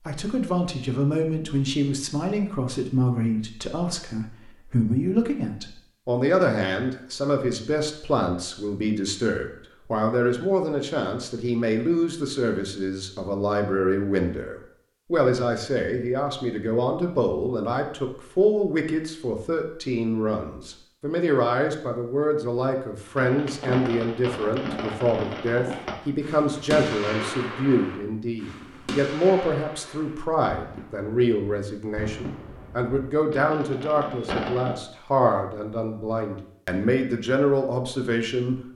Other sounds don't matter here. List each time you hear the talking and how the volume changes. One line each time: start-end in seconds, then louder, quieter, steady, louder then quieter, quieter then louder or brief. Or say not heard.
0.1-38.7 steady.